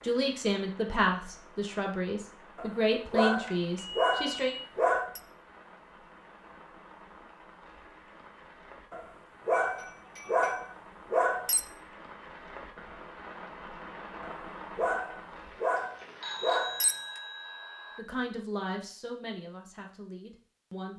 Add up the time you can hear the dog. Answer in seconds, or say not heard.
8 s.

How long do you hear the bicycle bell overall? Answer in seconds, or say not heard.
4 s.